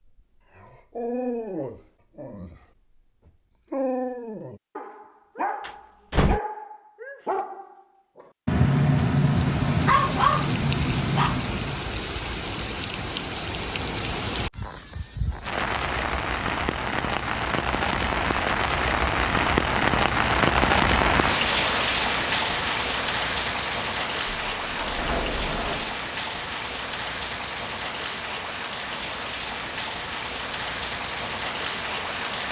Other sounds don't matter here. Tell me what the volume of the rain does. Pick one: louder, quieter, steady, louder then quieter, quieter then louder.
louder then quieter.